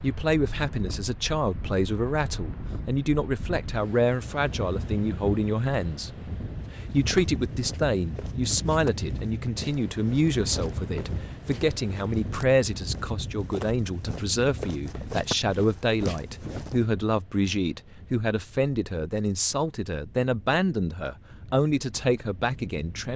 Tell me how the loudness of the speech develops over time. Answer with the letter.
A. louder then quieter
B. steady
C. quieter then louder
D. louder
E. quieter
B.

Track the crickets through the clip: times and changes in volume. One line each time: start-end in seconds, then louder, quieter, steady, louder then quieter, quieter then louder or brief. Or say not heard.
not heard.